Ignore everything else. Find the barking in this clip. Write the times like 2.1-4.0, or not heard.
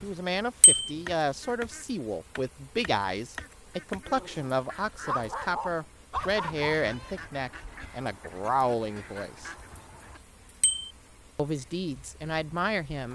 4.0-6.8.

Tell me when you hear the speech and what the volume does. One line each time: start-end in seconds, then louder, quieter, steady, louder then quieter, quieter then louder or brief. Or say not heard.
0.0-9.5 steady
11.3-13.1 brief.